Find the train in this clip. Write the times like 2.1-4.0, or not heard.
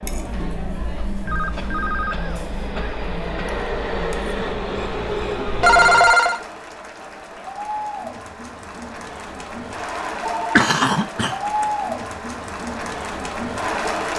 0.0-6.0.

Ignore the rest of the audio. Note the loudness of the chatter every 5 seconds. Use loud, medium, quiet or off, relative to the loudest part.
medium, medium, loud.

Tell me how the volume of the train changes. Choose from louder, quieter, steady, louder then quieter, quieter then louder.
louder.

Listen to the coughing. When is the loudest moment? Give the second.
11 s.